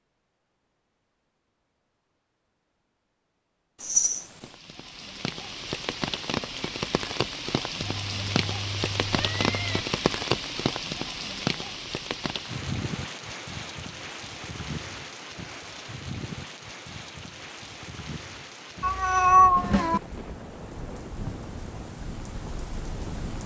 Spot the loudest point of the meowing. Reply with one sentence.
The loudest moment of the meowing is at 19 seconds.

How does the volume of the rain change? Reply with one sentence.
The volume of the rain goes down.